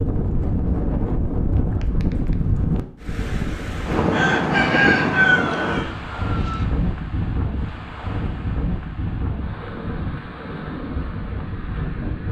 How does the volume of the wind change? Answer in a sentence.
The loudness of the wind goes down.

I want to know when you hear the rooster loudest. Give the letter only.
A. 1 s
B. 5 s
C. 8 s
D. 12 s
B.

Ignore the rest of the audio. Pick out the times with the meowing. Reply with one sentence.
You can't hear the meowing here.